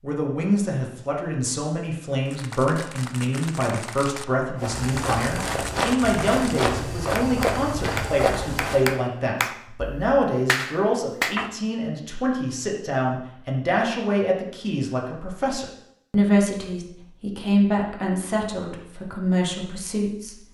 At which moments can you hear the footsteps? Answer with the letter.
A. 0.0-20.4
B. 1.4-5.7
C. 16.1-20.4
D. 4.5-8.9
D.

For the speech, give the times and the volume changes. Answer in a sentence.
You can hear the speech from 0.0 to 20.4 s, at a steady volume.